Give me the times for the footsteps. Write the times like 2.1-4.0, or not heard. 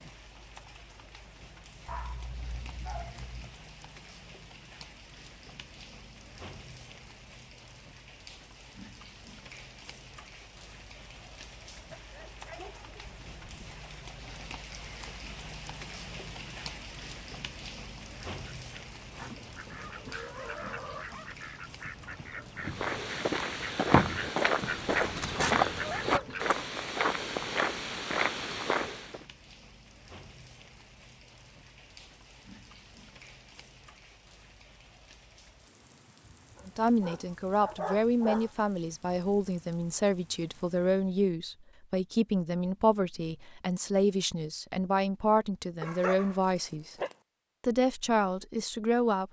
22.6-29.2.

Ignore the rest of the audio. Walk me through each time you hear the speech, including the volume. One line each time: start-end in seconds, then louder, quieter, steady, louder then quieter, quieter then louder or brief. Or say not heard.
36.6-47.0 steady
47.6-49.2 brief.